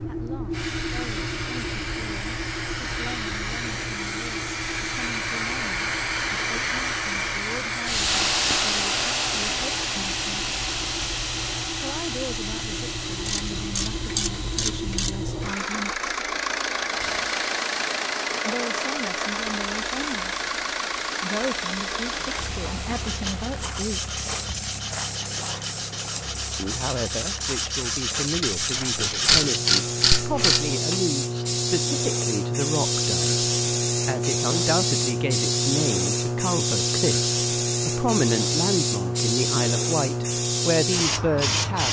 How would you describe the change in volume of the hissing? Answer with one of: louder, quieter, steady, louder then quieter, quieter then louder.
quieter then louder.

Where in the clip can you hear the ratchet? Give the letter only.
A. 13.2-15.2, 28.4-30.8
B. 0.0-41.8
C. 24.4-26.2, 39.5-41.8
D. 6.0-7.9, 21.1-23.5
A.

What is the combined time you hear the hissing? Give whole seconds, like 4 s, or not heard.
42 s.